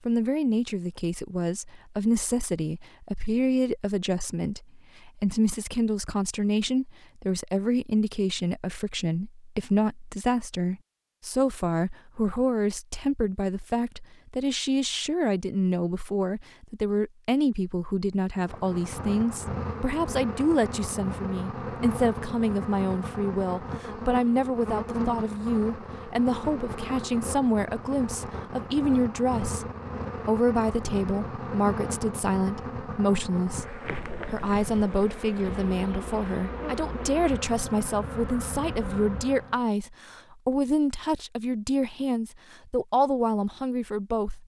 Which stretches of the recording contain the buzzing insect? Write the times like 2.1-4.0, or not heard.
18.4-39.6.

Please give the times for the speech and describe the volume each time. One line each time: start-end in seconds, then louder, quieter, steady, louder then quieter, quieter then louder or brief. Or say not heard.
0.1-44.4 steady.